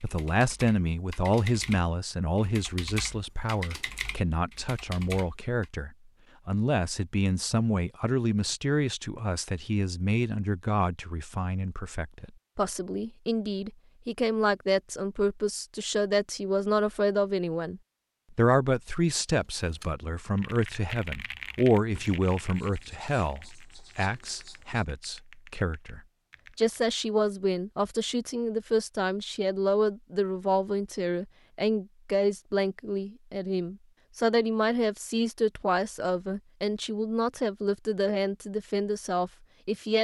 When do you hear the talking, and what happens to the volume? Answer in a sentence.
You can hear the talking from 0.0 to 40.0 s, at a steady volume.